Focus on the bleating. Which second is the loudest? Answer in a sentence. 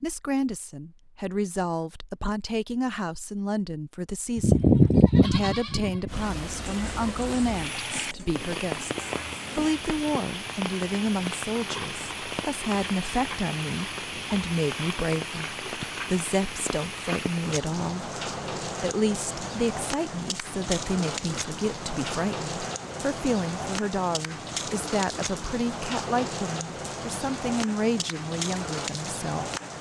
The loudest moment of the bleating is at 5 seconds.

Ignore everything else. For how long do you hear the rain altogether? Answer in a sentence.
The rain can be heard for 24 seconds in total.